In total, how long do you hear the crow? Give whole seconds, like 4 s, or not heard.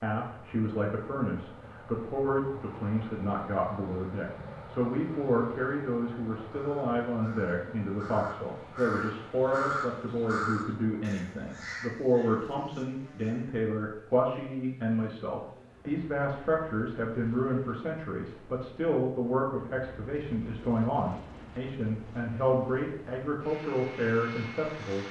7 s.